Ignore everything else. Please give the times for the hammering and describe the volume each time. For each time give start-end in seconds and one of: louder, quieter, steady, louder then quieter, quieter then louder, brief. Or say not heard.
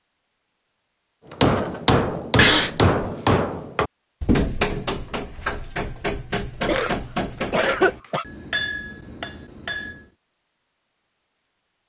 1.3-10.1 quieter.